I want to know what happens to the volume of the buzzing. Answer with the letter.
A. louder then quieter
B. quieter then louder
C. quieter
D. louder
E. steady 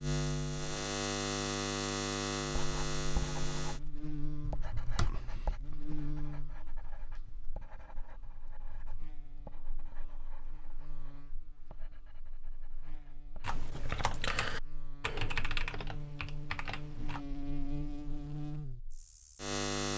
B.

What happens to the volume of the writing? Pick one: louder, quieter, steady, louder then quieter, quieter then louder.
quieter.